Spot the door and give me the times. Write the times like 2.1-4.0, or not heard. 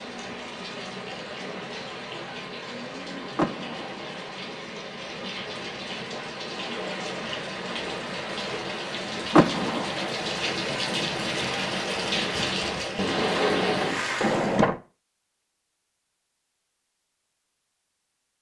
3.4-4.2, 9.3-9.9, 14.2-14.8.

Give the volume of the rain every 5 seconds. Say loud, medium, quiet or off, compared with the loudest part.
medium, medium, loud, off.